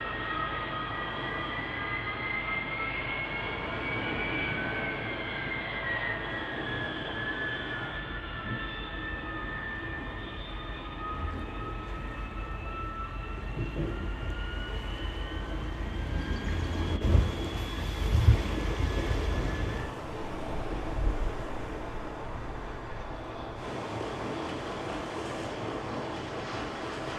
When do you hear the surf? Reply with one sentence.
You can hear the surf from 0.0 to 27.1 s.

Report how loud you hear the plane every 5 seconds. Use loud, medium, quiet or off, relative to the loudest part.
loud, loud, medium, quiet, medium, medium.